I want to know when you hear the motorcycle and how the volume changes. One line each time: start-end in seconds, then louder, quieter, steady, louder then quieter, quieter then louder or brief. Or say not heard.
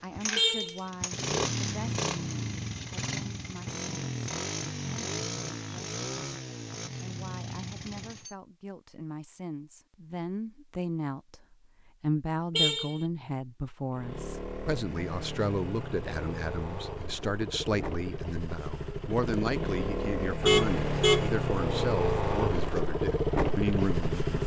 0.0-8.3 quieter
13.9-24.4 louder.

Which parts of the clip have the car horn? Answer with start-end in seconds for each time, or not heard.
0.3-0.8, 12.6-13.0, 20.4-21.3.